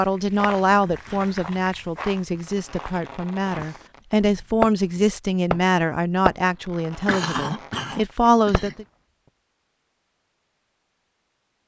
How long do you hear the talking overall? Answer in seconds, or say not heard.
9 s.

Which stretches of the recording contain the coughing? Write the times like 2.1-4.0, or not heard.
0.4-1.3, 7.0-8.8.